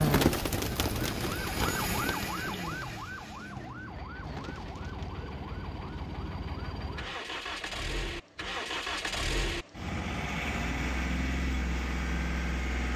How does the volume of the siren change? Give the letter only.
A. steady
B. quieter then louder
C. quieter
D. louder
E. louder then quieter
C.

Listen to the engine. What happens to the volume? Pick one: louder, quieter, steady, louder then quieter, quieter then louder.
louder.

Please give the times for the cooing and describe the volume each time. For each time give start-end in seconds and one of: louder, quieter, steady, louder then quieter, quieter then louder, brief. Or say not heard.
0.0-5.2 quieter then louder.